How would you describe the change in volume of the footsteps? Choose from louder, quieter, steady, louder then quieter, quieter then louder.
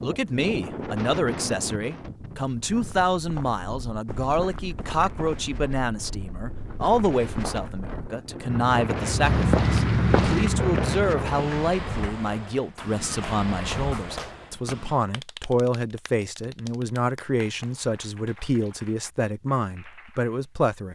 louder.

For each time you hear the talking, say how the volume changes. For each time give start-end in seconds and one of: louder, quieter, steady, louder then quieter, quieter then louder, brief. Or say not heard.
0.0-20.9 steady.